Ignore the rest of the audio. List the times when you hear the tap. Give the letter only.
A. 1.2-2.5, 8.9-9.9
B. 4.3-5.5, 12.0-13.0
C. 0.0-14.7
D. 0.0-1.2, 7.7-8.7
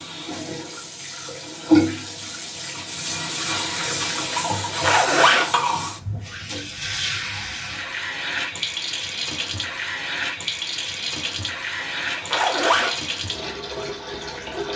C.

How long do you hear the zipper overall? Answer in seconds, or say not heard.
2 s.